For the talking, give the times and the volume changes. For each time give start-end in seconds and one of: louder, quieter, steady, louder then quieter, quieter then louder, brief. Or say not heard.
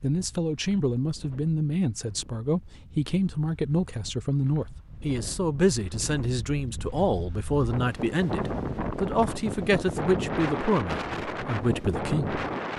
0.0-12.4 steady.